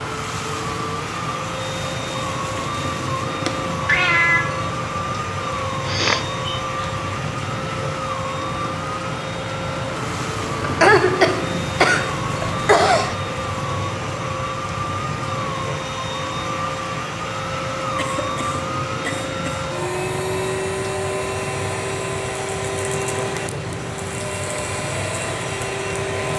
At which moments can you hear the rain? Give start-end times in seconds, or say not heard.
0.0-26.3.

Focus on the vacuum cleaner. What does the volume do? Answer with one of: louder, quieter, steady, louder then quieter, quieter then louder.
steady.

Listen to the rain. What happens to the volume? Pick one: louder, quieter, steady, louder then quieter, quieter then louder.
steady.